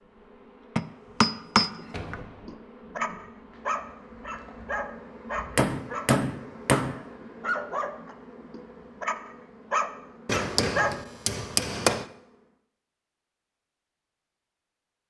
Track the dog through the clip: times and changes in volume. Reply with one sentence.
The dog can be heard from 2.5 to 10.9 s, getting quieter then louder.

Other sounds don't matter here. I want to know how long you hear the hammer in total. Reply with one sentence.
The hammer can be heard for 5 seconds in total.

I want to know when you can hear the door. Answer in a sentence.
The door can be heard from 1.9 to 2.6 s.